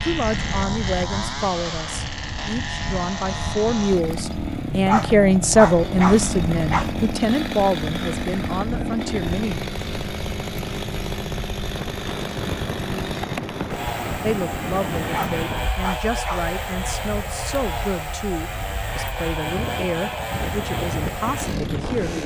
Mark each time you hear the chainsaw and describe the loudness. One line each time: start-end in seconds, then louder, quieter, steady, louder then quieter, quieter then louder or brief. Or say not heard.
0.0-22.2 steady.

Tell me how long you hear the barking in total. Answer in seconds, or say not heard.
4 s.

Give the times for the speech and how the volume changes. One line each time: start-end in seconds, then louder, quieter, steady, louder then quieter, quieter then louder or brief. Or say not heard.
0.0-9.6 louder then quieter
14.2-22.2 steady.